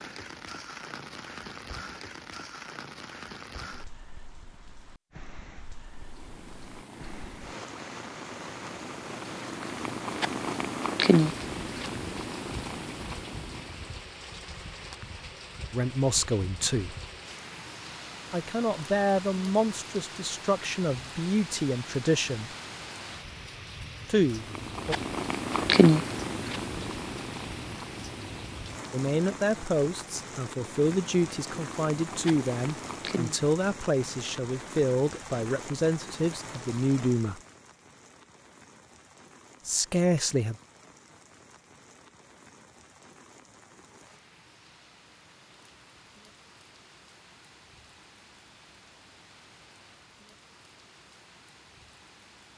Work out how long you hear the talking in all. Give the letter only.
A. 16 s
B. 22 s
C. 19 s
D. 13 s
A.